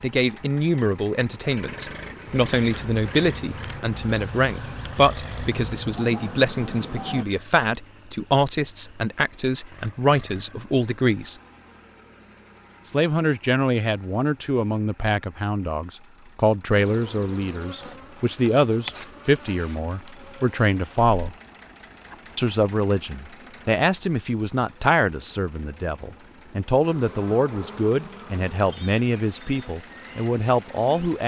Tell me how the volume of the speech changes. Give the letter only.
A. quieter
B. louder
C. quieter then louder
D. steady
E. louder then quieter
D.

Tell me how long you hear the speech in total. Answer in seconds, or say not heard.
29 s.